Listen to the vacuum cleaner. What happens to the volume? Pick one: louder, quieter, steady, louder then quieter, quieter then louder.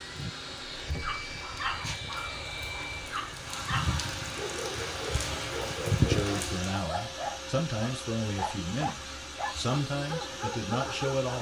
steady.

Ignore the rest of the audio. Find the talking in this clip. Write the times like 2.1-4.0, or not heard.
6.0-11.3.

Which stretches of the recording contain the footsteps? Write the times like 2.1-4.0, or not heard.
not heard.